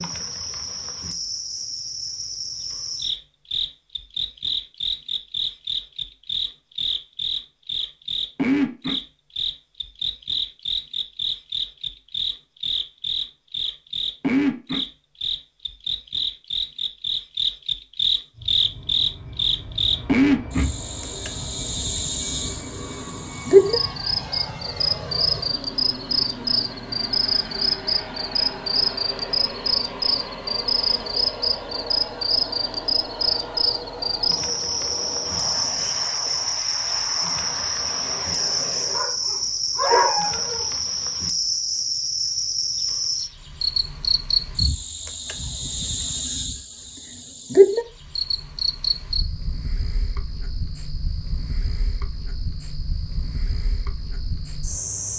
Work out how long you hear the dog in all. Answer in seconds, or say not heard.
2 s.